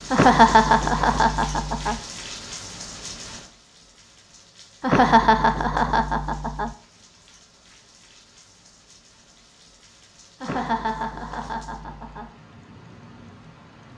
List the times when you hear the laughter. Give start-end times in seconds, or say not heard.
0.1-2.0, 4.8-6.7, 10.4-12.3.